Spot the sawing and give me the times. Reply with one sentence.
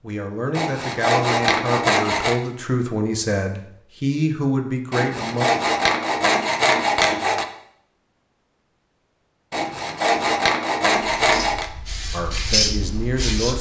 The sawing can be heard from 0.6 to 2.4 s, from 4.9 to 7.5 s and from 9.5 to 11.7 s.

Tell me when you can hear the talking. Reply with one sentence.
You can hear the talking from 0.0 to 5.5 s and from 12.1 to 13.5 s.